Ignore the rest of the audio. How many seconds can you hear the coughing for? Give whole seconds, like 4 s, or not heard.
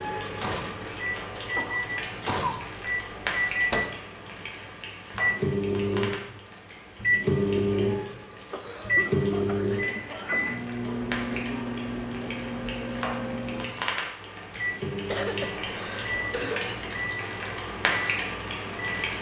5 s.